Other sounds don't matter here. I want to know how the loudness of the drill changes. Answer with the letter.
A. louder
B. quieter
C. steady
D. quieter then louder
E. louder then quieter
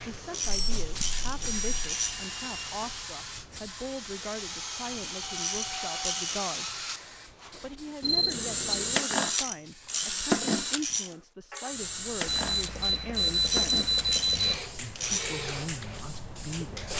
E.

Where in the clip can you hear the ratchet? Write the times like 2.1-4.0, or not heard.
0.3-2.1, 5.3-6.3, 9.2-11.1, 13.4-15.2.